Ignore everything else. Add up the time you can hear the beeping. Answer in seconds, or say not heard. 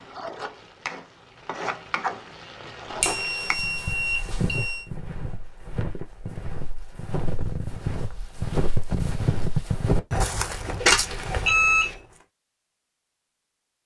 3 s.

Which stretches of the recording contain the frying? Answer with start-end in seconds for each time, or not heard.
0.0-3.5.